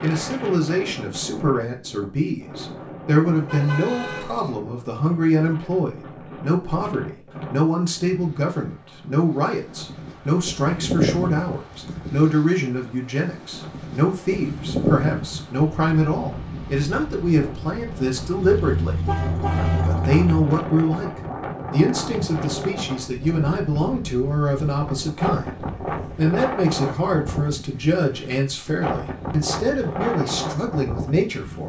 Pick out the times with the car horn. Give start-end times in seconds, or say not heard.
3.2-4.5, 18.4-20.4.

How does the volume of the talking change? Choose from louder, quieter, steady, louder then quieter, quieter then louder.
steady.